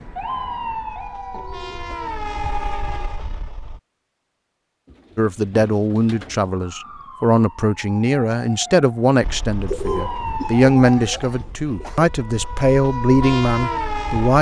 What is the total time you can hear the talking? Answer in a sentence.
The talking can be heard for 9 seconds in total.